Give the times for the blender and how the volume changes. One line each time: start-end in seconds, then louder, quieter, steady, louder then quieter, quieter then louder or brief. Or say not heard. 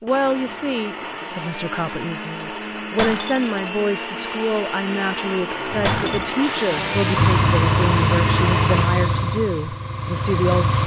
0.1-8.9 louder.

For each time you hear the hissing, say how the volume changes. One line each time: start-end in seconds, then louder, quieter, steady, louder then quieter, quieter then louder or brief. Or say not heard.
5.7-10.8 louder then quieter.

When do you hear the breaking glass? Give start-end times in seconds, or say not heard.
3.0-3.7, 5.8-6.4.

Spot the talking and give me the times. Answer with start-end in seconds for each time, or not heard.
0.0-10.8.